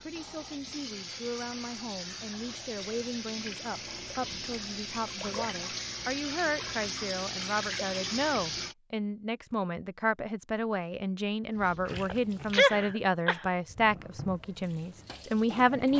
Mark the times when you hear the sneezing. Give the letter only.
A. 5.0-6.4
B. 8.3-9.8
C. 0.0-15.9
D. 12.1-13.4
D.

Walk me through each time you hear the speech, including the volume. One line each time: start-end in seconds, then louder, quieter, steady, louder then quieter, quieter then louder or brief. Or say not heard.
0.0-15.9 louder.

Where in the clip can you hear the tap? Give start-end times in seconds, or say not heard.
0.0-8.8, 11.6-15.9.